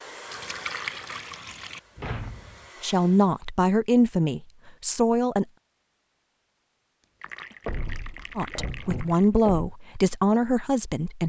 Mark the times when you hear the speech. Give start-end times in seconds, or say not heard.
2.8-5.5, 8.3-11.2.